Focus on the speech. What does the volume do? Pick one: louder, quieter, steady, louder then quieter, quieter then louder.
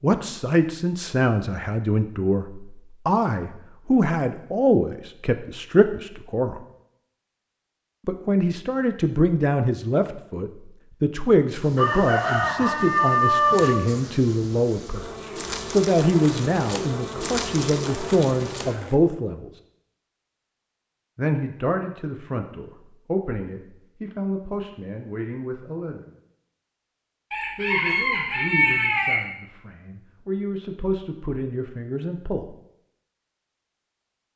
quieter.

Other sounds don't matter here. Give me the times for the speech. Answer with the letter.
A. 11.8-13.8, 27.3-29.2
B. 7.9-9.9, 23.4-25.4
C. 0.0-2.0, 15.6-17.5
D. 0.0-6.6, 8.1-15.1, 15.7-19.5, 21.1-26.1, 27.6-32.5
D.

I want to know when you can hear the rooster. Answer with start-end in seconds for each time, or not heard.
11.8-13.8, 27.3-29.2.